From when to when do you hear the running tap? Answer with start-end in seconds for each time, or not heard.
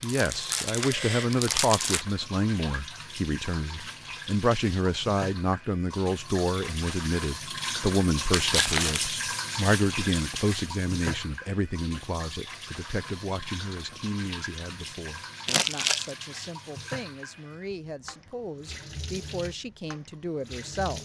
0.0-20.9.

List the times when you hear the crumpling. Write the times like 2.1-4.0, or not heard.
0.0-2.0, 8.3-9.1, 15.4-16.1.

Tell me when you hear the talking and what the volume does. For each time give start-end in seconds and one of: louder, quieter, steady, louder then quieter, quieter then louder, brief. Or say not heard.
0.0-20.9 quieter.